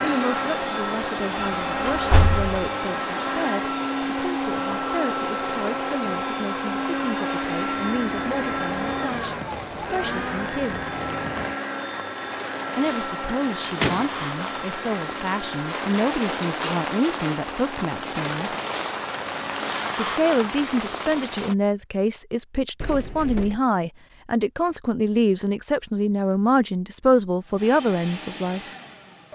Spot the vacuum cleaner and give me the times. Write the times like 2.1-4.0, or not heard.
0.0-19.9, 27.4-29.2.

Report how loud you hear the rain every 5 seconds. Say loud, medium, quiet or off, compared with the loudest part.
medium, medium, medium, loud, loud, off.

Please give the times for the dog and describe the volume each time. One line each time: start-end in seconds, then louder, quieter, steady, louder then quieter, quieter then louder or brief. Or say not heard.
not heard.